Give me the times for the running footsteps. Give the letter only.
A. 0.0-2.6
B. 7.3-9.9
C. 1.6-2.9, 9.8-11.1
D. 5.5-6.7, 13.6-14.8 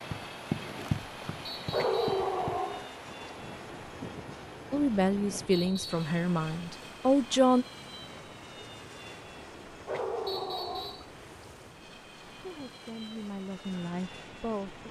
A.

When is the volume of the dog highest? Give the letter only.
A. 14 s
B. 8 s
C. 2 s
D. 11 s
C.